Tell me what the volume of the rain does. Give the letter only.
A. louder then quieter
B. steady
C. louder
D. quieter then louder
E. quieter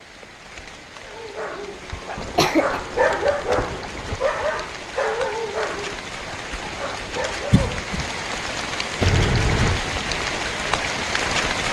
C.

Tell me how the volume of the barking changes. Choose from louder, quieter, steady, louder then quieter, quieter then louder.
louder then quieter.